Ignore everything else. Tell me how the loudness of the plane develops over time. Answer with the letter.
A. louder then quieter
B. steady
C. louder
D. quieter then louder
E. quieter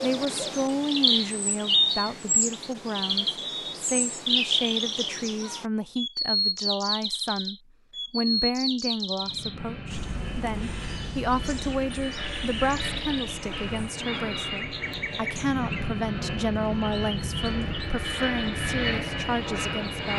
C.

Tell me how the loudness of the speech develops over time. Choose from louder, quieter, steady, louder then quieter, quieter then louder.
steady.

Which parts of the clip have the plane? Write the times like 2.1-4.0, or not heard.
9.2-20.1.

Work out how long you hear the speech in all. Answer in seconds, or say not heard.
20 s.